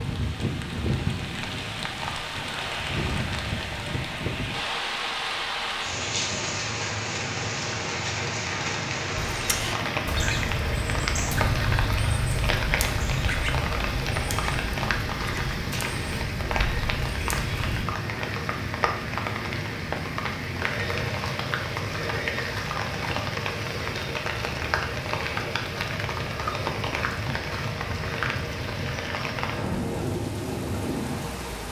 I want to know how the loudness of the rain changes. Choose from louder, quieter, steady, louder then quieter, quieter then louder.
steady.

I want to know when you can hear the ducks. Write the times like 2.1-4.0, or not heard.
9.2-17.9.